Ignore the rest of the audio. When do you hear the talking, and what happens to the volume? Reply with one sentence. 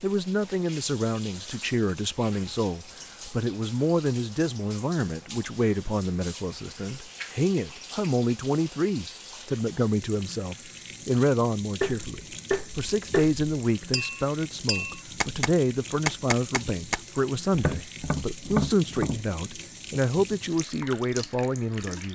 You can hear the talking from 0.0 to 22.0 s, at a steady volume.